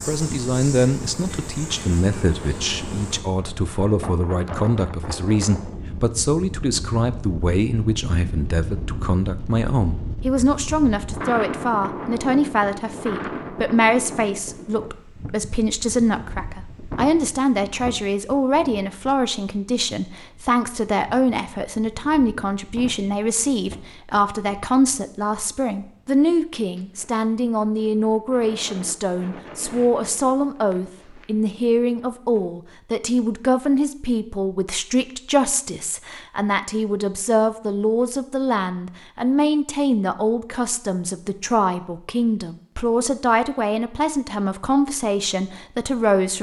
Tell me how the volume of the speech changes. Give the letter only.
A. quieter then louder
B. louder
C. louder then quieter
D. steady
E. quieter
D.